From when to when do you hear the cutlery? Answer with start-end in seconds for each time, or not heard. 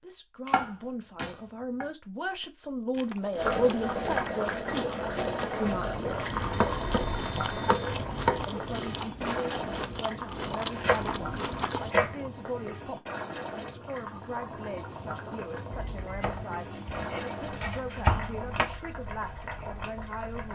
not heard.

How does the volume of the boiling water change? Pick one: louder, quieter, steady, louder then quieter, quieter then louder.
quieter.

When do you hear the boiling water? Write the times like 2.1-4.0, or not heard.
3.4-20.5.